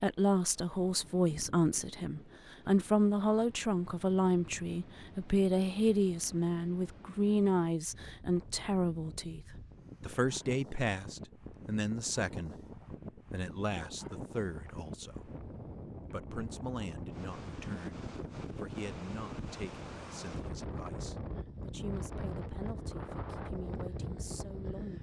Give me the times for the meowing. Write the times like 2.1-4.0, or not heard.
not heard.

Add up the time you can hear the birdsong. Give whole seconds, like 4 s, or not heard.
not heard.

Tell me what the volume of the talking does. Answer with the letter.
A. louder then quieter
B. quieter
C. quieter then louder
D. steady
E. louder
B.